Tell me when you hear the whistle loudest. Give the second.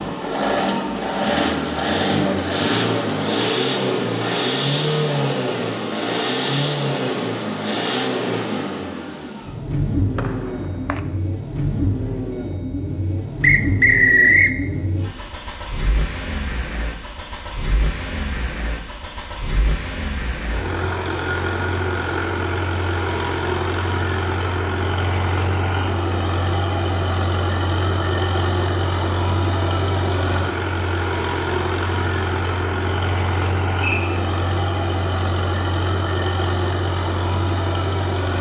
14 s.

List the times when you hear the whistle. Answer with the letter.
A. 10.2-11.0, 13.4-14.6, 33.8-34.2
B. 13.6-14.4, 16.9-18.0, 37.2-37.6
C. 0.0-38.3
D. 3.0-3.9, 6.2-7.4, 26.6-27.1
A.